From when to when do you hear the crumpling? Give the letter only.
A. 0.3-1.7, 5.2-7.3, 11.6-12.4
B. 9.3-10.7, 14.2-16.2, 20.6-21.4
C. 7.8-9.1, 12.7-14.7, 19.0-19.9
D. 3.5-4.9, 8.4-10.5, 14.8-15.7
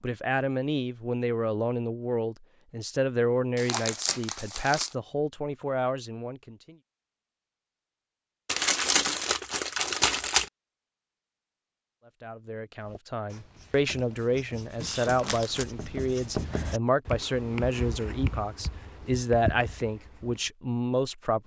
D.